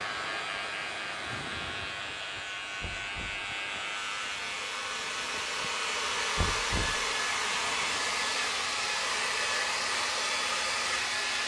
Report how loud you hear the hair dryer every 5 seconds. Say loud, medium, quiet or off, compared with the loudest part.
medium, loud, loud.